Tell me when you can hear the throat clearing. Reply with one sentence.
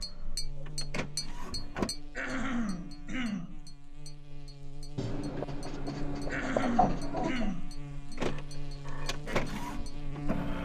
You can hear the throat clearing from 2.1 to 3.7 s and from 6.3 to 7.8 s.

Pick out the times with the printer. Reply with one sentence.
The printer can be heard from 0.0 to 1.9 s and from 8.0 to 10.5 s.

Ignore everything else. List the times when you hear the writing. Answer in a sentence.
The writing can be heard from 5.0 to 7.5 s.